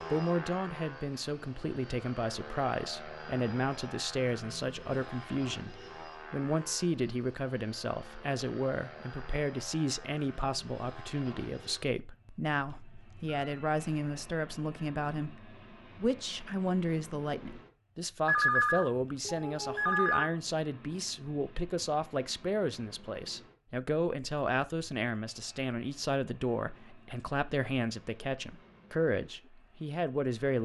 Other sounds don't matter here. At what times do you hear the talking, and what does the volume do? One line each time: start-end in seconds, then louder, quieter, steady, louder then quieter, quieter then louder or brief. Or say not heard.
0.1-30.5 steady.